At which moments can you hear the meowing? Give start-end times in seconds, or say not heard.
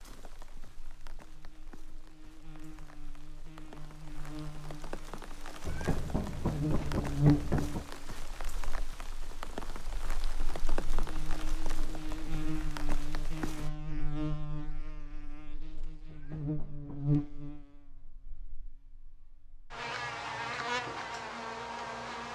5.7-7.9, 16.1-17.4.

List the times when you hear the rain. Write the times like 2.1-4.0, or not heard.
0.0-13.7.